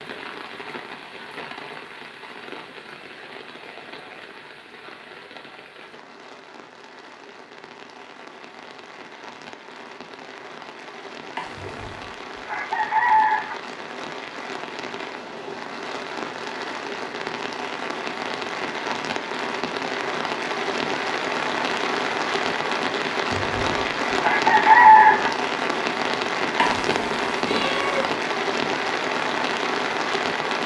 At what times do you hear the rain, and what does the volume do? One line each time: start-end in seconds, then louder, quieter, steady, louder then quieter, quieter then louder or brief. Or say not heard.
0.0-30.6 louder.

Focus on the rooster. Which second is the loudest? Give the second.
25 s.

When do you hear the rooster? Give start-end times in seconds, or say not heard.
11.6-13.6, 23.3-25.3.